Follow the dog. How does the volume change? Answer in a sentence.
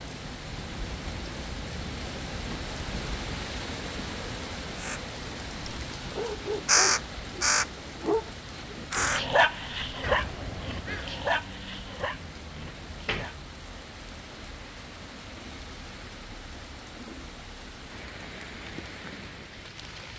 The loudness of the dog goes up, then down.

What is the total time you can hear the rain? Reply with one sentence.
The rain can be heard for 20 seconds in total.